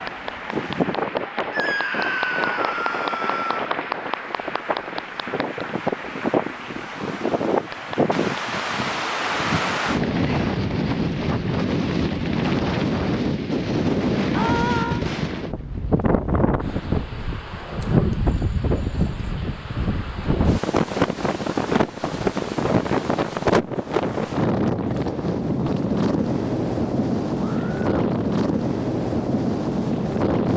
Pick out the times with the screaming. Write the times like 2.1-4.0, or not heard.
1.5-3.7, 14.3-15.1, 27.4-27.9.